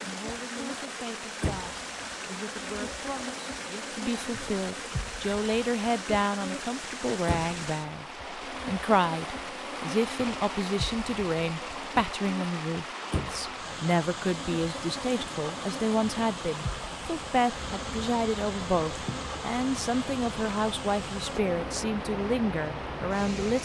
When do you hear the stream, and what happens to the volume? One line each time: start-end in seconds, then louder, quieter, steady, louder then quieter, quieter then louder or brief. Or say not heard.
0.0-23.6 steady.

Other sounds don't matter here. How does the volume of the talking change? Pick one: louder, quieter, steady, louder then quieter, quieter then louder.
louder.